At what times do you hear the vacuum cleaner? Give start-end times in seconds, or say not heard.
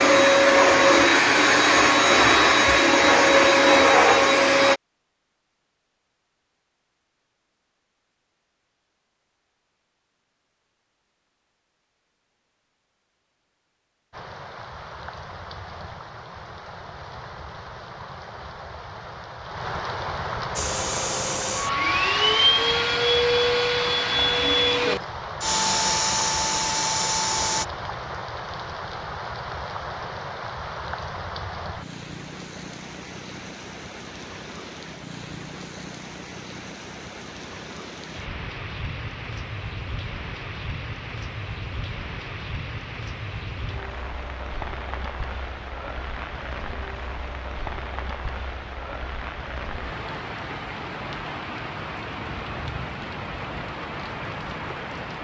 0.0-4.8, 20.6-27.6.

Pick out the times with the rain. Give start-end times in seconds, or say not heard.
14.1-55.1.